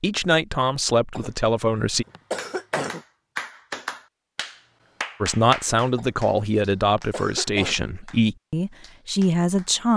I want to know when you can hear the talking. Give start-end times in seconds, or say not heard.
0.0-2.0, 5.2-9.9.